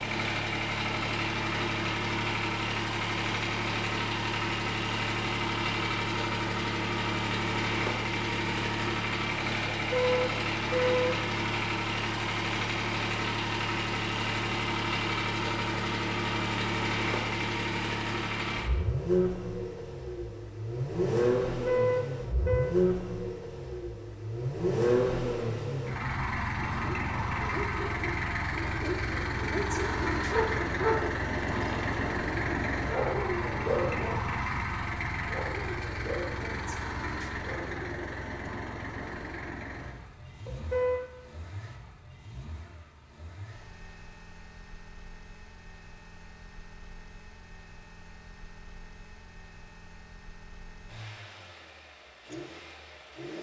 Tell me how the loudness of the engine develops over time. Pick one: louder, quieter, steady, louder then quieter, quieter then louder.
quieter.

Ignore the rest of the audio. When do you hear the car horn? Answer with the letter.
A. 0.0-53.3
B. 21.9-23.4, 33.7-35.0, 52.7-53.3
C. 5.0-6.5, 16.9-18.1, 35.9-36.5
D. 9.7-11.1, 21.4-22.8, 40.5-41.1
D.